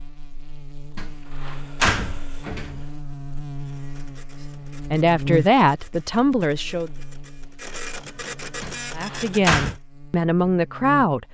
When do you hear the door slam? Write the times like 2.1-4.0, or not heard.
0.9-2.9, 8.6-9.8.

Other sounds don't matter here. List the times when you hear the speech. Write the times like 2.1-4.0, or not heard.
4.9-6.9, 8.9-11.2.